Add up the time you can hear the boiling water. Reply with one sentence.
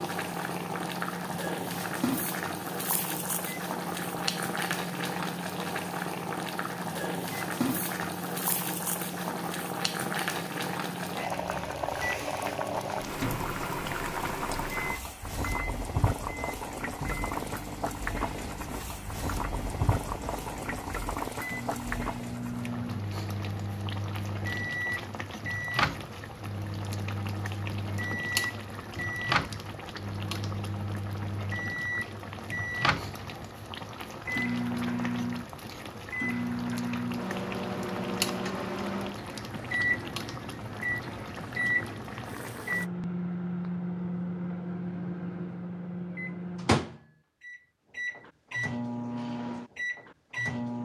You can hear the boiling water for 43 seconds altogether.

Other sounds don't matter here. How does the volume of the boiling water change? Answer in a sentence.
The volume of the boiling water goes down.